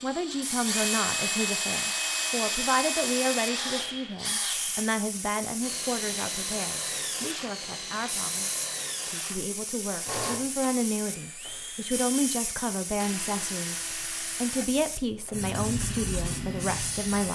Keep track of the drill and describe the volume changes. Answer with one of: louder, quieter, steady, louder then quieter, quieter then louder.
quieter.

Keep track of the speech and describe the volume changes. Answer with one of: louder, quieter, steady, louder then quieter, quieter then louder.
quieter then louder.